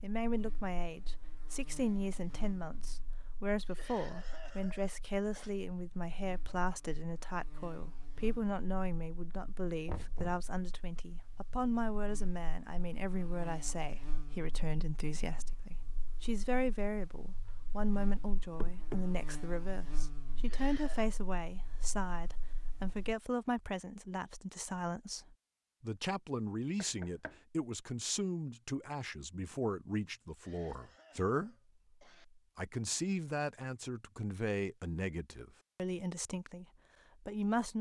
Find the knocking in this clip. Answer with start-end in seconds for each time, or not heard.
9.8-10.4, 18.6-19.1, 26.8-27.4.